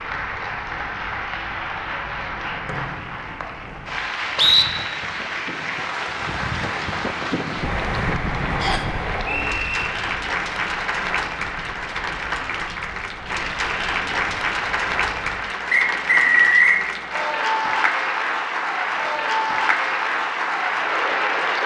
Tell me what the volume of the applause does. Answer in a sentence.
The volume of the applause goes up.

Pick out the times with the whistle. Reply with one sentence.
The whistle can be heard from 2.6 to 4.7 s, from 8.6 to 9.8 s and from 15.7 to 16.8 s.